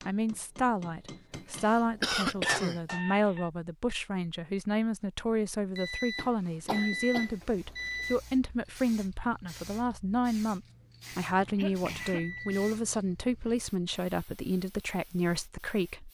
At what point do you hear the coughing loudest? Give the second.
2 s.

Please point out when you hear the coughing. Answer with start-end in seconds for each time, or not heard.
1.3-2.8, 6.2-8.2, 11.1-12.4.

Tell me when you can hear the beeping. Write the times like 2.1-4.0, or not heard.
2.9-3.5, 5.8-8.2, 12.0-12.6.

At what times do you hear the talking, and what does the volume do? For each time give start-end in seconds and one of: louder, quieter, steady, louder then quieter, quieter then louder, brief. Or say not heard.
0.1-16.0 steady.